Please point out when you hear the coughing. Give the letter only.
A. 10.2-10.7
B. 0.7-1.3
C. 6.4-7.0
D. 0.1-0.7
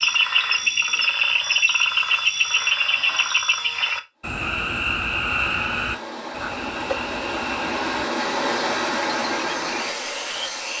C.